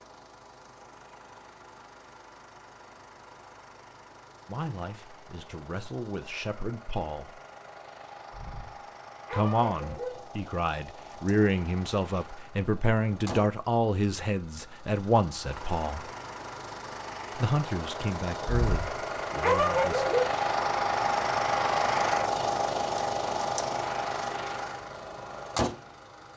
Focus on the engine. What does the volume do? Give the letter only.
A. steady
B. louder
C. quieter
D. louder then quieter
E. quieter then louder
B.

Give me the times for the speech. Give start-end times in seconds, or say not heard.
4.5-7.4, 9.3-16.1, 17.4-20.1.